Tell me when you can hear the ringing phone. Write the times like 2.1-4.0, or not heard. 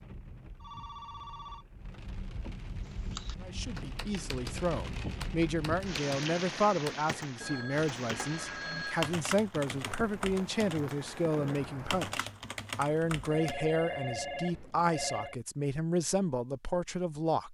0.6-1.6, 7.4-9.2, 13.2-15.3.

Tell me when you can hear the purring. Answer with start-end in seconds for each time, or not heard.
not heard.